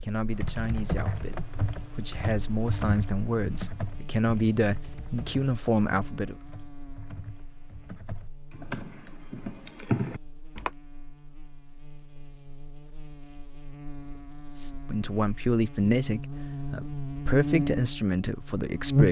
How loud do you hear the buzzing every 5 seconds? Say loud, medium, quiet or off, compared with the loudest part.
quiet, quiet, quiet, loud.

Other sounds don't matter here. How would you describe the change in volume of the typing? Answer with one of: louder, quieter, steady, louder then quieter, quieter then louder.
quieter then louder.